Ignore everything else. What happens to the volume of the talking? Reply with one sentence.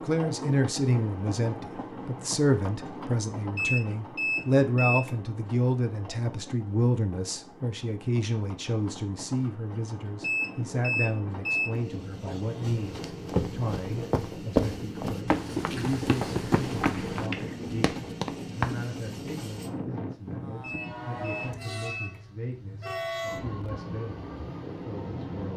The volume of the talking goes down.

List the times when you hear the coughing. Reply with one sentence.
You can hear the coughing from 16.9 to 17.9 s.